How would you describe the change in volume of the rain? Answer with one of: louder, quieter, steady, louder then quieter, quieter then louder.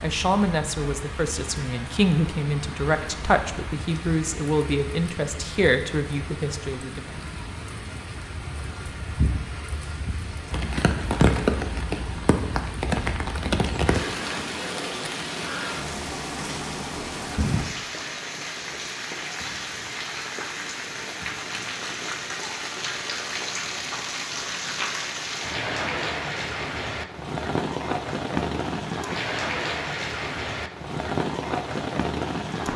louder.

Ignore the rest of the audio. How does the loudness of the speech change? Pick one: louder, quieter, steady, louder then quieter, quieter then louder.
steady.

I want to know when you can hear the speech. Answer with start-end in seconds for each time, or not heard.
0.0-7.0.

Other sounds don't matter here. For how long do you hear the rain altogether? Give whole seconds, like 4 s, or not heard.
33 s.